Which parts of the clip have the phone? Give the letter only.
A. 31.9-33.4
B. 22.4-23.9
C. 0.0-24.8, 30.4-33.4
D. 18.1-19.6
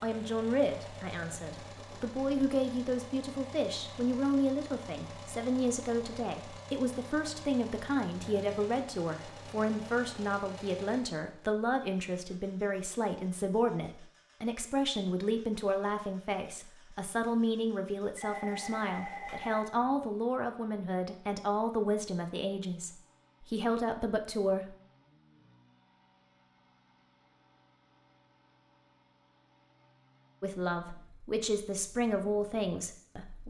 D.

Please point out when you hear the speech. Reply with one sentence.
The speech can be heard from 0.0 to 24.8 s and from 30.4 to 33.4 s.